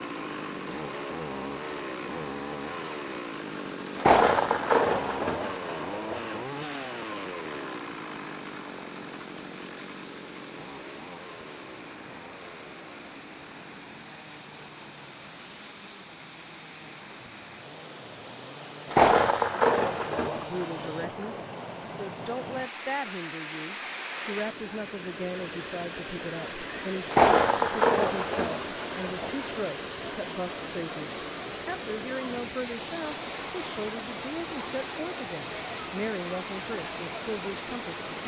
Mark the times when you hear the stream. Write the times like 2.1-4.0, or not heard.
0.0-38.2.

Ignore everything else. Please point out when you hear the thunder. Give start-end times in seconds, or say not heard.
4.0-6.2, 18.9-21.4, 27.1-29.4.